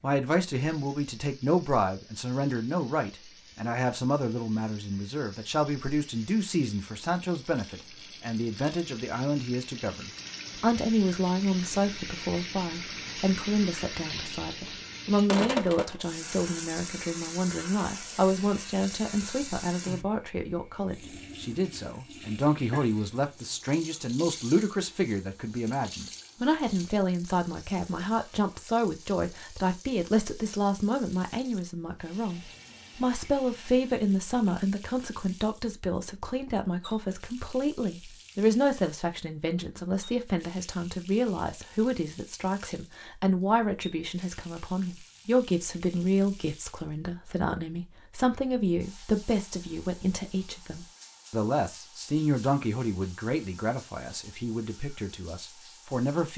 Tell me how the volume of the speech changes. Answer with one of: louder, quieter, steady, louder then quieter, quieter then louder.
steady.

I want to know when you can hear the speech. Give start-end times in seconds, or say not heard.
0.0-56.3.